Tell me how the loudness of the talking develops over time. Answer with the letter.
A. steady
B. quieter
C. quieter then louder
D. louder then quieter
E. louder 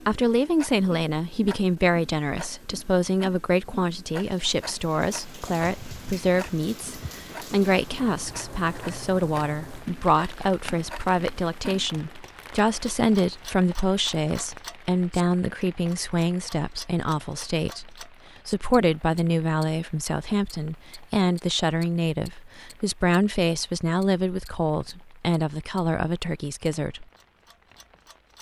A.